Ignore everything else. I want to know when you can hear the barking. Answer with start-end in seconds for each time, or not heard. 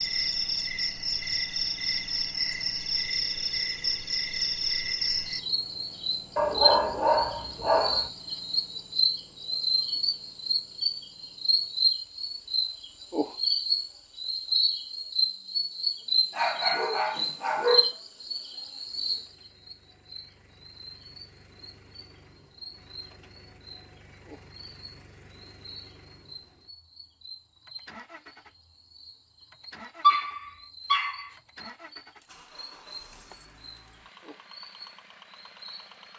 6.3-8.1, 16.3-17.9, 30.0-31.3.